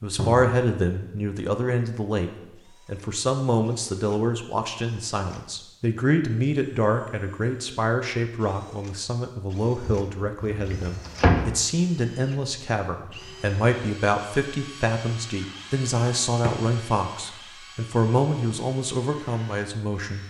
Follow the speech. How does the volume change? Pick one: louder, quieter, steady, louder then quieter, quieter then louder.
steady.